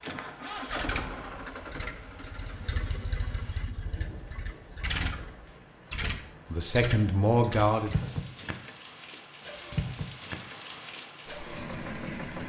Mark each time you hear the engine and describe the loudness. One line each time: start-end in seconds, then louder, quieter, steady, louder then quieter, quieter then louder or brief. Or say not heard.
0.0-12.4 steady.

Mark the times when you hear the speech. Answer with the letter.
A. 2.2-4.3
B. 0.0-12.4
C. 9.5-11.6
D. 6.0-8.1
D.